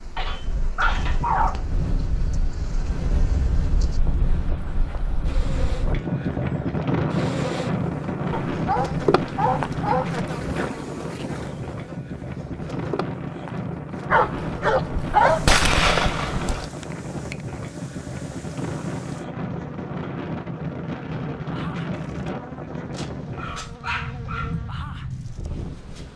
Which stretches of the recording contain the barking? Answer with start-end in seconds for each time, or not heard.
0.1-1.6, 8.5-10.2, 14.1-16.6, 22.9-24.6.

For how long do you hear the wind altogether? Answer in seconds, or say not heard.
26 s.